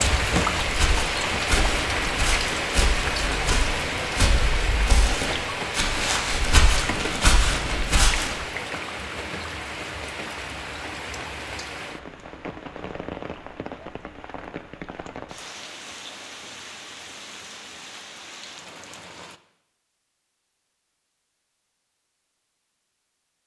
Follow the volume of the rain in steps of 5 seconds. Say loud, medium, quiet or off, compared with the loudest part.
loud, medium, medium, quiet, off.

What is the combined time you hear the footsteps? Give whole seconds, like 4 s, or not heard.
8 s.